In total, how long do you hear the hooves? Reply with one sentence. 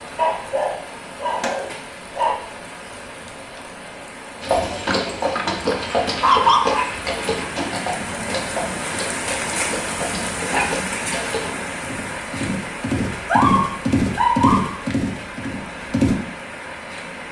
You can hear the hooves for 12 seconds altogether.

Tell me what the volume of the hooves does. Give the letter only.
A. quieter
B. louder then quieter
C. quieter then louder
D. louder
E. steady
C.